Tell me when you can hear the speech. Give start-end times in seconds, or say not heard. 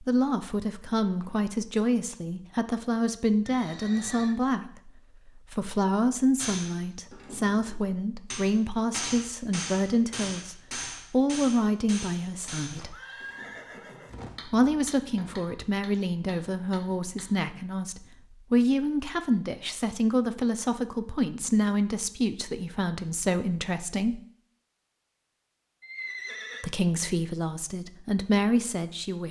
0.0-12.9, 14.4-24.2, 26.6-29.2.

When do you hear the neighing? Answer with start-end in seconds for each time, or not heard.
3.5-4.3, 12.7-14.3, 25.8-26.6.